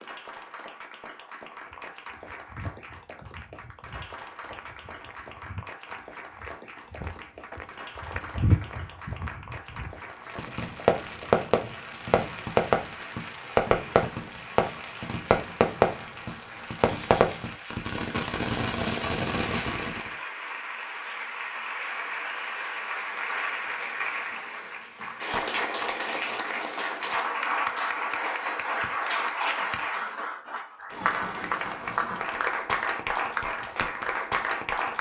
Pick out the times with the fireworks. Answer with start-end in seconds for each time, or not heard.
10.3-20.1.